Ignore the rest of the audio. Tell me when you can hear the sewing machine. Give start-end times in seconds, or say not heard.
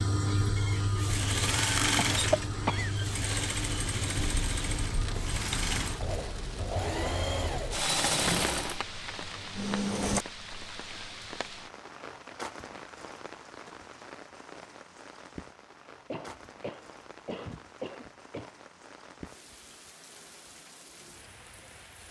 0.0-10.2.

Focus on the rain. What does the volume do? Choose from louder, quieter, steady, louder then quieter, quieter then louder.
quieter.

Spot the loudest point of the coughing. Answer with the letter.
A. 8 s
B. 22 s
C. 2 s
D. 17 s
C.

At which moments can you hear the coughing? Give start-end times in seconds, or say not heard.
1.9-2.9, 16.1-18.6.